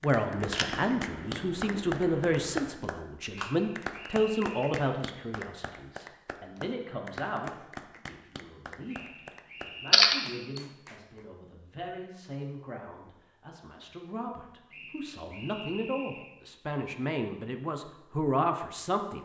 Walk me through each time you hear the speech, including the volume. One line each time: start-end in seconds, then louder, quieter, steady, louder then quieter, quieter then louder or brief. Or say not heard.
0.0-19.2 quieter then louder.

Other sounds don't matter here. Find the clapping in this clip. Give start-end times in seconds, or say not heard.
0.0-11.2.